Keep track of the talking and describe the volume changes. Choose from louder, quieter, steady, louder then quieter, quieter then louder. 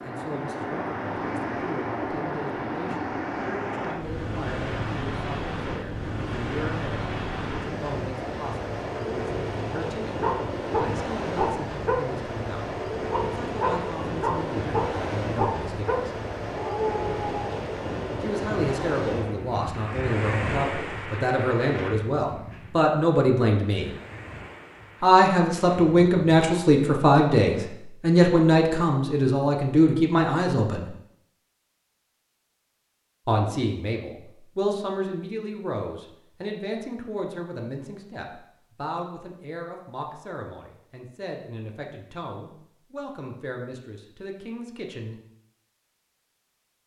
louder then quieter.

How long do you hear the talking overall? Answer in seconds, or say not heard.
39 s.